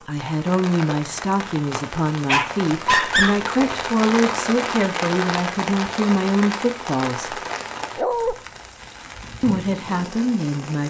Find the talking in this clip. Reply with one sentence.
The talking can be heard from 0.1 to 7.4 s and from 9.4 to 10.8 s.